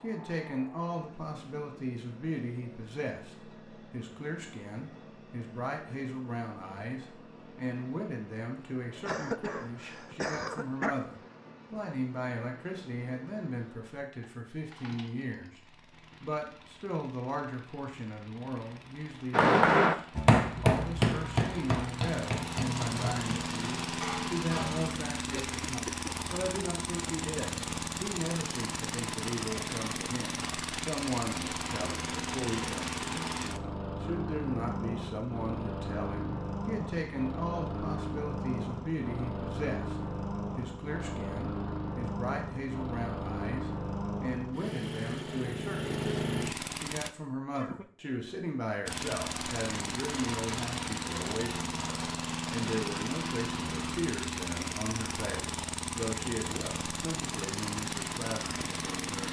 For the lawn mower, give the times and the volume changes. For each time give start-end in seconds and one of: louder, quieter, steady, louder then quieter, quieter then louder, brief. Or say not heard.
0.0-47.1 louder
48.9-59.2 steady.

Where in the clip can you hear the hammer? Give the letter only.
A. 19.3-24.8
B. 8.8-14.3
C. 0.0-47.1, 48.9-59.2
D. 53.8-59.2
A.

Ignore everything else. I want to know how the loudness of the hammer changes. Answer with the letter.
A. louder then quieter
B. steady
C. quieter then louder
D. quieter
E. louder
D.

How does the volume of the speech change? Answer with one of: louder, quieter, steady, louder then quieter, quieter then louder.
steady.